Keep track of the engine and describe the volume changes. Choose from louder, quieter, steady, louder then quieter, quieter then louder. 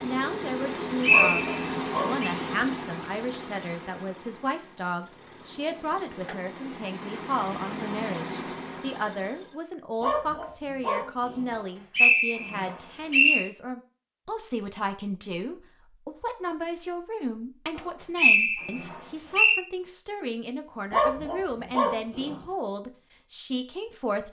quieter then louder.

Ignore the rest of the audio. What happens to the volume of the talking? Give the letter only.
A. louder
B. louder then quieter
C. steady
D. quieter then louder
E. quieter
C.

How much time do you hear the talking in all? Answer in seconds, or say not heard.
24 s.